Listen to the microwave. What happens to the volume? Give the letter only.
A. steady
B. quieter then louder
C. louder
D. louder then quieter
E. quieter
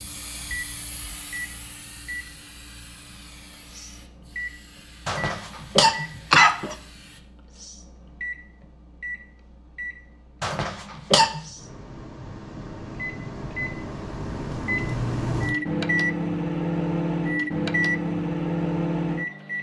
C.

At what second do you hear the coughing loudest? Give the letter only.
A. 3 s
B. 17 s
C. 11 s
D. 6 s
D.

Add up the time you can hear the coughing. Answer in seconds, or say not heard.
3 s.